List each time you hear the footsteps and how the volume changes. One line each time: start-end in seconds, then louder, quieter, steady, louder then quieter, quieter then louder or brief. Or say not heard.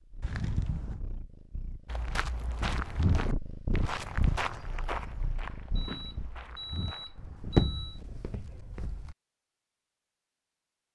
1.9-9.2 quieter then louder.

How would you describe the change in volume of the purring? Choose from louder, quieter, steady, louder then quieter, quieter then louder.
louder then quieter.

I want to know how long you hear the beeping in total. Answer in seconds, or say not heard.
3 s.